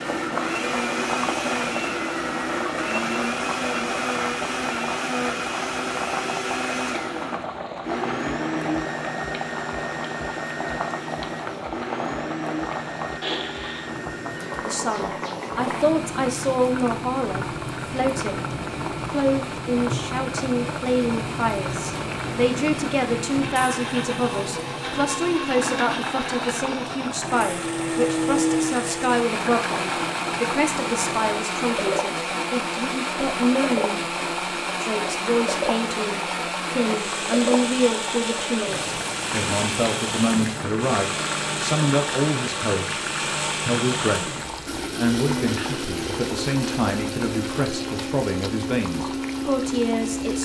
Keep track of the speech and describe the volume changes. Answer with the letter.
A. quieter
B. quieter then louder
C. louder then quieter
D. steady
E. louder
D.